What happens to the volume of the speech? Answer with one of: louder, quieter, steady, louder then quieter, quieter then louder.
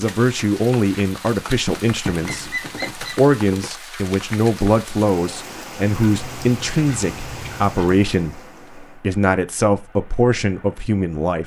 steady.